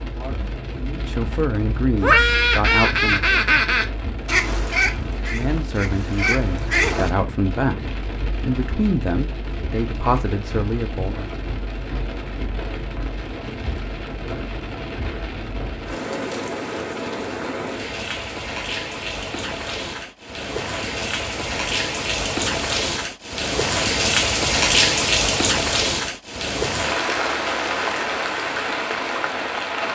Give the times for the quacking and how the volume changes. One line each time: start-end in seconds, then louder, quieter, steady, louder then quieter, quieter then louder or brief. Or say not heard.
2.0-7.1 quieter then louder.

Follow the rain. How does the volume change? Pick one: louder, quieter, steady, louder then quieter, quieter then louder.
louder.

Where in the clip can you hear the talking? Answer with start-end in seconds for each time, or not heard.
0.0-3.2, 5.2-11.3.